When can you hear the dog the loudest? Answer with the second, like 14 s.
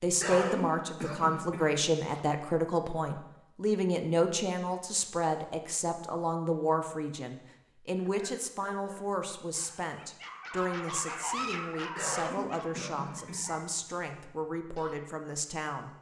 11 s.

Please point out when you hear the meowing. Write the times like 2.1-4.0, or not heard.
not heard.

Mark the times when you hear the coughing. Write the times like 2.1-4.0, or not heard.
0.2-2.2, 11.9-13.9.